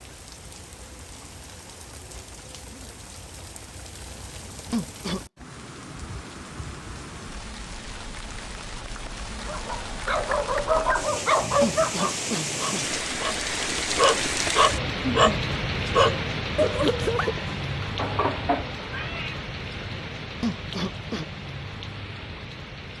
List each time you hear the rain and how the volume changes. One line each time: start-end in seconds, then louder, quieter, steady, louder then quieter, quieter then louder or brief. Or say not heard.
0.0-22.9 louder then quieter.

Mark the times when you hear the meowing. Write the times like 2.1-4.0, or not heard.
17.9-19.4.